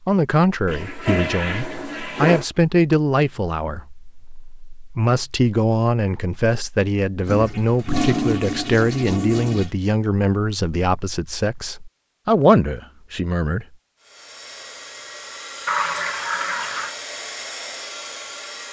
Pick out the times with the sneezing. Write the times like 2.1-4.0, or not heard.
not heard.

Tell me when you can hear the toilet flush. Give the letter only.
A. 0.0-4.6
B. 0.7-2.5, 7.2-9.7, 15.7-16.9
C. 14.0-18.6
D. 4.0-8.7
B.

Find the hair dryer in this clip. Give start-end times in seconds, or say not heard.
14.0-18.6.